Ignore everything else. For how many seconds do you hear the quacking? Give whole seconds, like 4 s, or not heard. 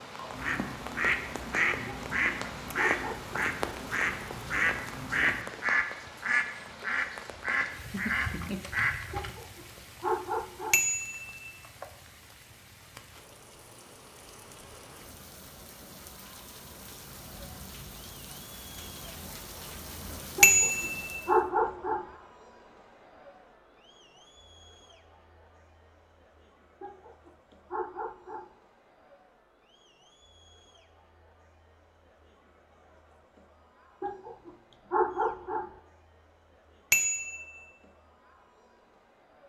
9 s.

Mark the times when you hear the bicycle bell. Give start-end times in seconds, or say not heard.
10.7-11.4, 20.4-21.0, 36.9-37.5.